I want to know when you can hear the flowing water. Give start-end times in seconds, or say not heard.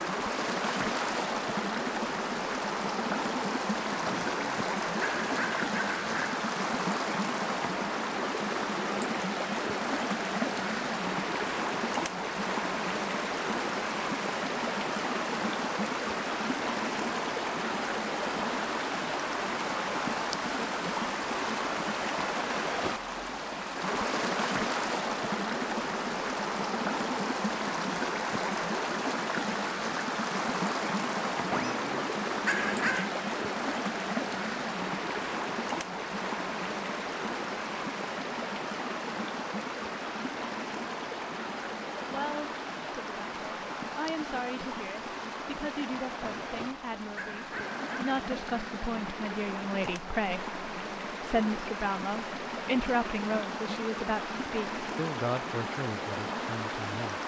0.0-57.2.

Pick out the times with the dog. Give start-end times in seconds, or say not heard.
4.0-6.4, 31.5-33.1, 46.2-48.1.